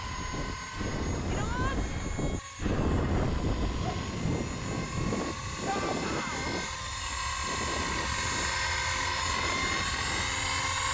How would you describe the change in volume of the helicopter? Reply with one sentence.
The volume of the helicopter goes up.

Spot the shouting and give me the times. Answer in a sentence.
You can hear the shouting from 1.2 to 1.8 s and from 5.7 to 6.5 s.